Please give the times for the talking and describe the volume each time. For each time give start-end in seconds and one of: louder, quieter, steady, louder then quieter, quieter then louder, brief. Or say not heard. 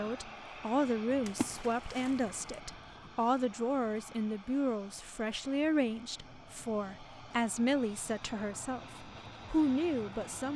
0.0-10.5 steady.